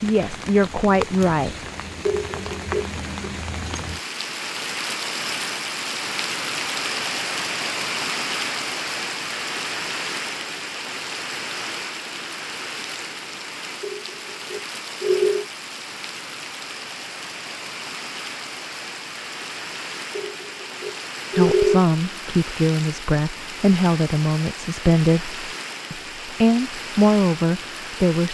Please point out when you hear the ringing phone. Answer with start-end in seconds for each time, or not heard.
2.0-3.3, 13.8-15.4, 20.1-21.9.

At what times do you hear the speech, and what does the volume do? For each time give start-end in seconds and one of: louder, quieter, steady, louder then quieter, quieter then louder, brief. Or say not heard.
0.0-1.6 brief
21.4-28.3 steady.